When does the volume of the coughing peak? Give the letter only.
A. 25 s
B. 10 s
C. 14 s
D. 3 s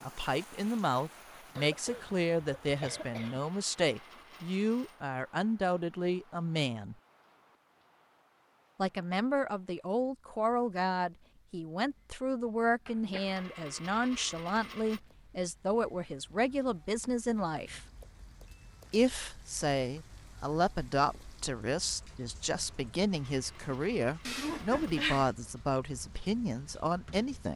A.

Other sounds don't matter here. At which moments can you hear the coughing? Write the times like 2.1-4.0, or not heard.
1.6-3.4, 12.8-13.4, 24.2-25.3.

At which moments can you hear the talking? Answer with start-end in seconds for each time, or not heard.
0.0-7.0, 8.8-17.8, 18.9-27.5.